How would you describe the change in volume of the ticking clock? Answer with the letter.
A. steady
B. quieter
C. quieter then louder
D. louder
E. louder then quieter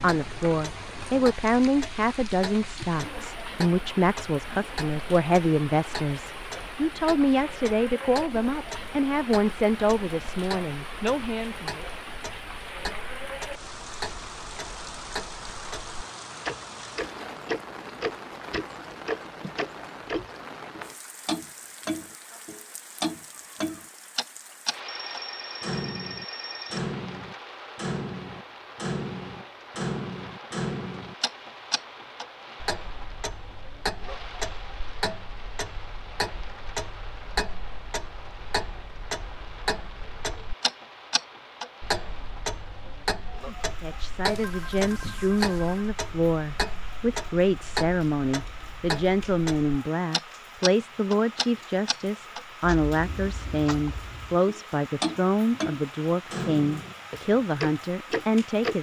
D.